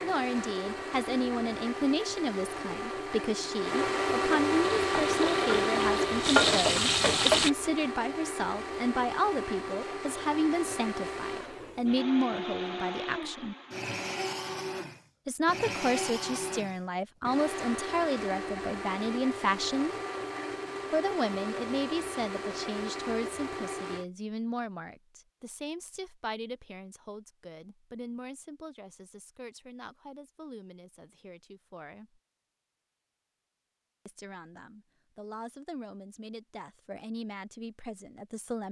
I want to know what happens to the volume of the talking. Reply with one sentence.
The volume of the talking goes down.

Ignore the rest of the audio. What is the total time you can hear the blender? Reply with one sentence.
The blender can be heard for 24 seconds in total.